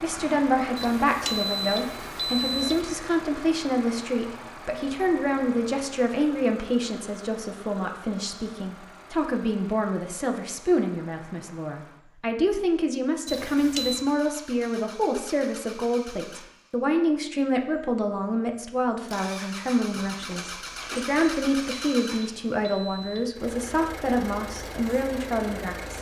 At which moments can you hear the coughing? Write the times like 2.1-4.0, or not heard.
not heard.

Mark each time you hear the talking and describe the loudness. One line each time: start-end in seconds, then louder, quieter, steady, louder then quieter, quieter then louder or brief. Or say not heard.
0.0-25.9 steady.